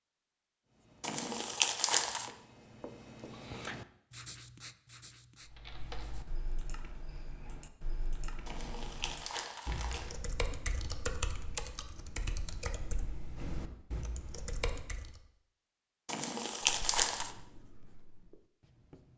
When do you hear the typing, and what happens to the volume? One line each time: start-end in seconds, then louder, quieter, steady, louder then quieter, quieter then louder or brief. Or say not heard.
5.4-15.2 louder.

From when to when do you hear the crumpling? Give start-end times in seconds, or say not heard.
1.0-2.3, 8.4-10.2, 16.1-17.4.